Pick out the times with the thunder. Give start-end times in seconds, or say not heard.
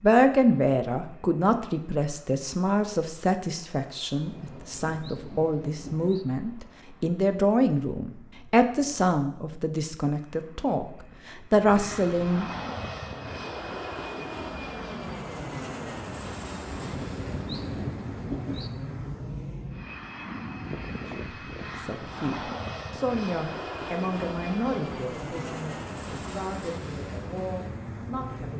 4.2-6.2, 16.6-18.7.